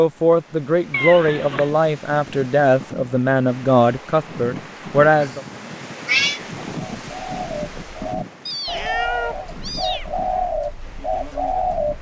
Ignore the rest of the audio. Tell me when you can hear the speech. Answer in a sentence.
You can hear the speech from 0.0 to 5.5 s.